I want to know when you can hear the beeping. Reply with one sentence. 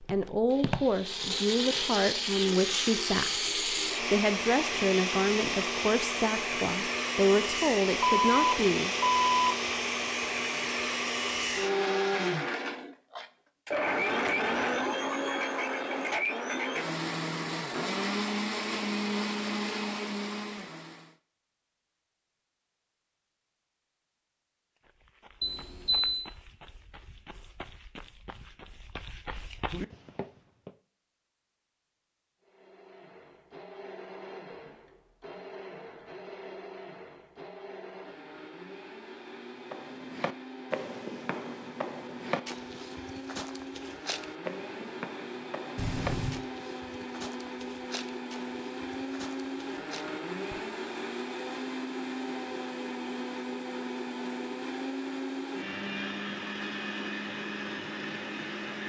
You can hear the beeping from 8.0 to 9.6 s, from 25.4 to 26.2 s and from 45.8 to 46.4 s.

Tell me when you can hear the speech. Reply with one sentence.
The speech can be heard from 0.1 to 8.9 s.